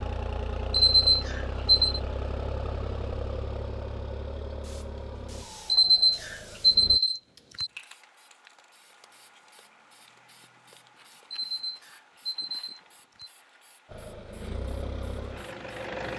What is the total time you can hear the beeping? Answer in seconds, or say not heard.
5 s.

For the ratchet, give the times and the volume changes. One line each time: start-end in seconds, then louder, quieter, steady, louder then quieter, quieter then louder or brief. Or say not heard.
not heard.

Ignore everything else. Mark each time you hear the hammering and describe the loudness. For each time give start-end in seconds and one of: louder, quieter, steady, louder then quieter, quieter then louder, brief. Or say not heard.
not heard.